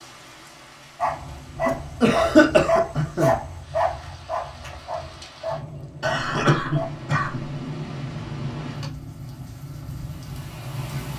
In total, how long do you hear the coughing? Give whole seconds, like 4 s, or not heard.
3 s.